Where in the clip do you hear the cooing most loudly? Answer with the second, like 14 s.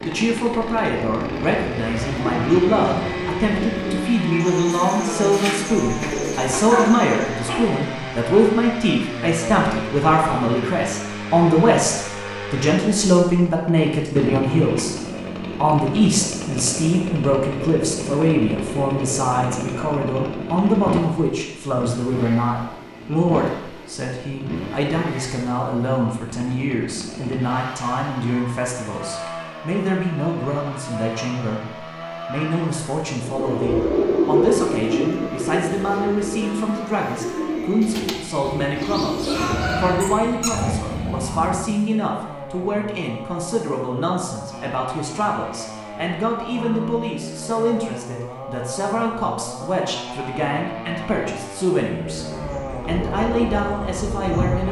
34 s.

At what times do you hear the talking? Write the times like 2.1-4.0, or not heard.
0.0-14.9, 15.6-54.6.